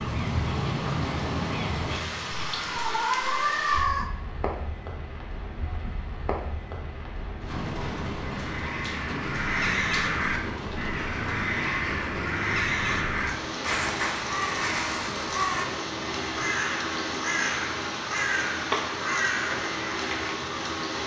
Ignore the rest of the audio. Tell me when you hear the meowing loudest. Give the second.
4 s.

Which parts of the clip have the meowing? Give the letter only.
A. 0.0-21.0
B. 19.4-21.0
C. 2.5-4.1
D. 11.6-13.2
C.